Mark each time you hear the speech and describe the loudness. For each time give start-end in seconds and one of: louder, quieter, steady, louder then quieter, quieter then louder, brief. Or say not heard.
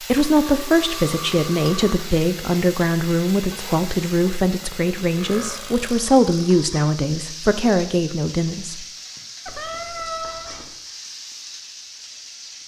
0.1-8.8 steady.